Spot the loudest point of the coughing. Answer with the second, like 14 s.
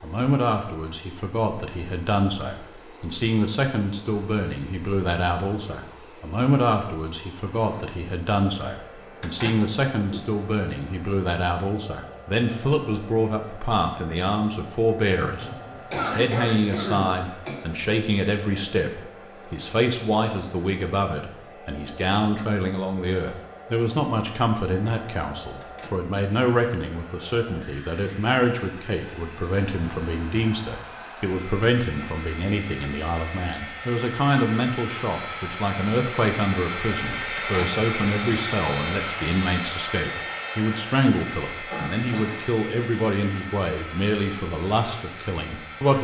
16 s.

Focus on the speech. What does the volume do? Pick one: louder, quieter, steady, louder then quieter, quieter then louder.
steady.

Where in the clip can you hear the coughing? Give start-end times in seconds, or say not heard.
15.2-17.6, 41.7-42.4.